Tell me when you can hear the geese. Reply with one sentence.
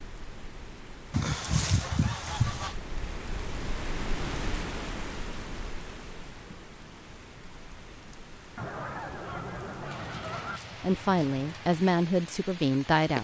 The geese can be heard from 1.1 to 2.8 s and from 8.6 to 10.6 s.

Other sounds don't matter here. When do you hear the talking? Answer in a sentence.
You can hear the talking from 10.8 to 13.1 s.